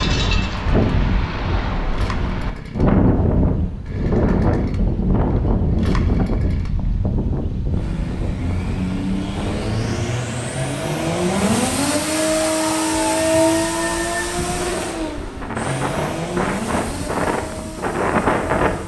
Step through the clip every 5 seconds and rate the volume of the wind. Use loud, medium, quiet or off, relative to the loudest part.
loud, loud, quiet, loud.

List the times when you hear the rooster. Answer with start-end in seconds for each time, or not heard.
12.4-14.2.